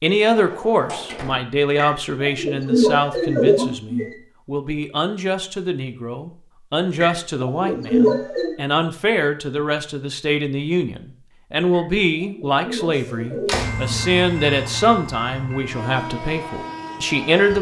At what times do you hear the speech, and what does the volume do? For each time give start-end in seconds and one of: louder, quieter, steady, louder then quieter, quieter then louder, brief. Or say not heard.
0.0-17.5 steady.